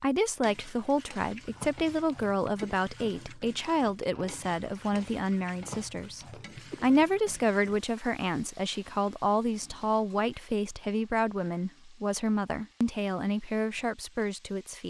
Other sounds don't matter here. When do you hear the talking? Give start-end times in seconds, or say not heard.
0.0-14.8.